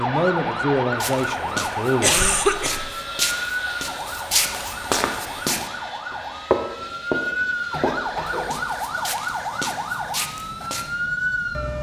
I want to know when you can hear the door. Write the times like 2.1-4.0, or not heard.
not heard.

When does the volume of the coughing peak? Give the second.
2 s.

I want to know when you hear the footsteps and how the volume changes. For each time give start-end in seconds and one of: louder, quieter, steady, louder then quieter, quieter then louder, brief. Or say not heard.
1.0-10.9 louder then quieter.